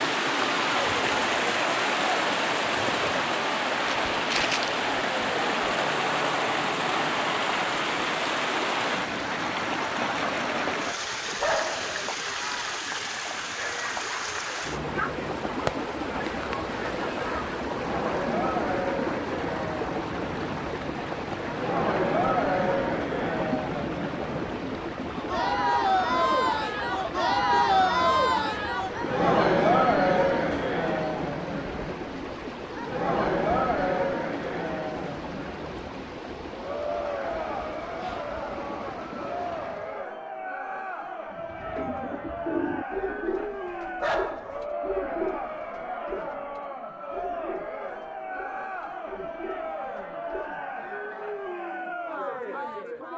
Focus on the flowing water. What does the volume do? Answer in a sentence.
The loudness of the flowing water goes down.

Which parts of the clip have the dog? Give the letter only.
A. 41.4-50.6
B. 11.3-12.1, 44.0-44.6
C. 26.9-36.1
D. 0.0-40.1
B.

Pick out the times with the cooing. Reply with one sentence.
The cooing can be heard from 41.4 to 50.6 s.